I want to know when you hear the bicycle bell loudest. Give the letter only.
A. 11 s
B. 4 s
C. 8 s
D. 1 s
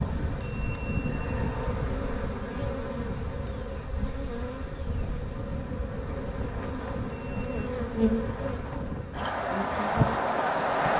D.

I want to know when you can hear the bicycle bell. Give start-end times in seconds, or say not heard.
0.3-2.3, 7.0-7.7.